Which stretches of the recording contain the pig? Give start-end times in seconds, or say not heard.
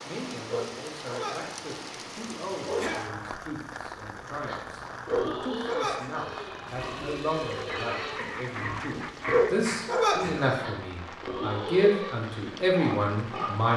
4.1-13.7.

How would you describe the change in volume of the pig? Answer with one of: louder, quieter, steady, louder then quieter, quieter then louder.
steady.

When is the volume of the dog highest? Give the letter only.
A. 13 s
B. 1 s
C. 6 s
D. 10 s
D.